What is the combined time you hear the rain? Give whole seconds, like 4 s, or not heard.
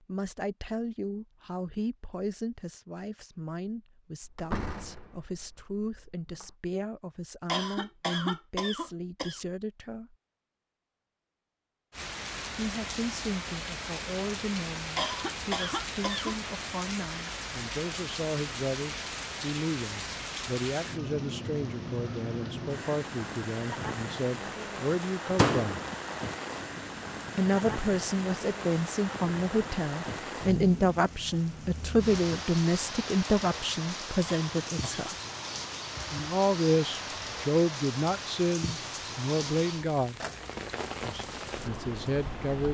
31 s.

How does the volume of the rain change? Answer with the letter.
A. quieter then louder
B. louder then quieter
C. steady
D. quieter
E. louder
C.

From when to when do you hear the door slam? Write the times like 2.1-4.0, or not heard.
4.2-6.5, 25.4-25.8.